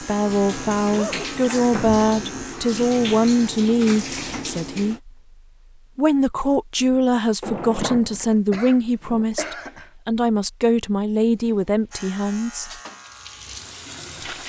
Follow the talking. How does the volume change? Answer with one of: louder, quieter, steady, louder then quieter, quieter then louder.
steady.